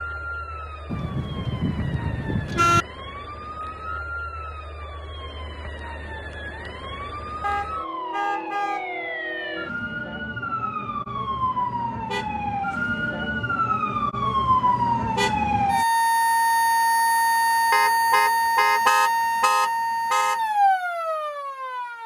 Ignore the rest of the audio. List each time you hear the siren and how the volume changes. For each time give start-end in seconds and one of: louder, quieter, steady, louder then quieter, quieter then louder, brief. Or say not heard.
0.0-22.0 louder.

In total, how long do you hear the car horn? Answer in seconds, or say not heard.
6 s.